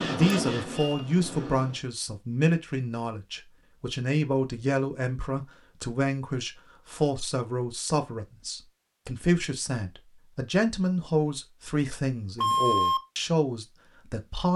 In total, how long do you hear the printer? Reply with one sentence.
The printer can be heard for 2 seconds in total.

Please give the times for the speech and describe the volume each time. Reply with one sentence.
You can hear the speech from 0.0 to 14.5 s, at a steady volume.